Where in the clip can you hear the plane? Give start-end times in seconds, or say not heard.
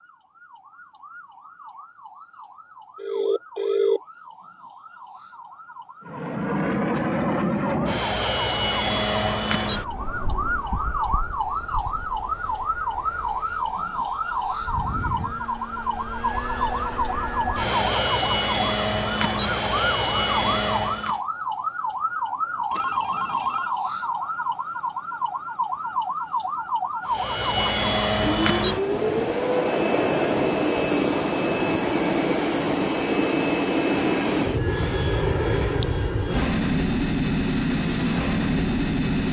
6.0-21.2, 27.1-39.2.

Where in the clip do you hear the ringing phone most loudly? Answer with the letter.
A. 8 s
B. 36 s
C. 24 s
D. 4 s
D.